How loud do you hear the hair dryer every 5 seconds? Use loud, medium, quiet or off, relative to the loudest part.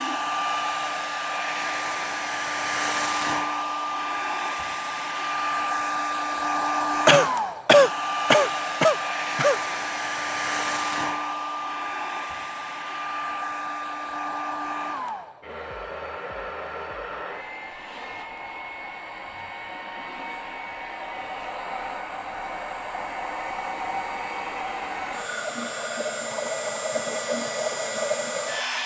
loud, loud, loud, medium, medium, loud.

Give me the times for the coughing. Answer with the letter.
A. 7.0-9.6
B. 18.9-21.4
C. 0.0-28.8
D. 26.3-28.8
A.